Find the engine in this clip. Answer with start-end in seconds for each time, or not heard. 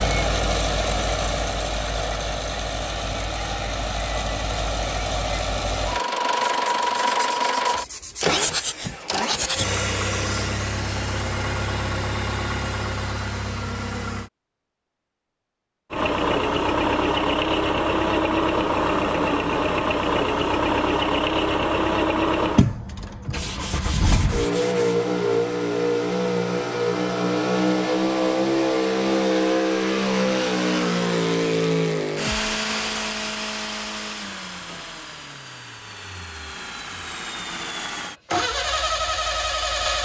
0.0-14.3, 15.9-40.0.